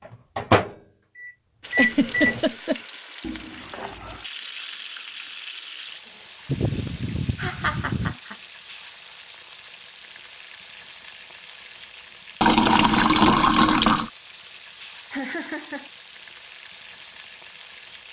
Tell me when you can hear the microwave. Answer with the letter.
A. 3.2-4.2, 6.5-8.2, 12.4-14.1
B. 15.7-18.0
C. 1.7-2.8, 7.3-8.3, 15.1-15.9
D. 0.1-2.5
D.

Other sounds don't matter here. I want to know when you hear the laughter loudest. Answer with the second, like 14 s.
2 s.